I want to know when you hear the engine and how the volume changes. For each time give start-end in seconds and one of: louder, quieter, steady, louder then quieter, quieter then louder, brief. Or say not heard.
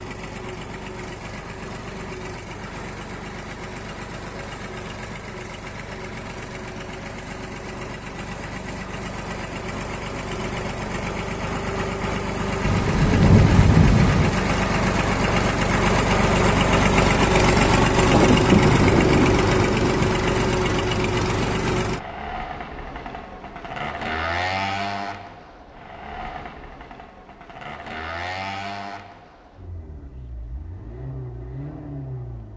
0.0-32.5 louder then quieter.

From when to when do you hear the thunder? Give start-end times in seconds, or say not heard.
12.7-14.3, 18.1-20.1.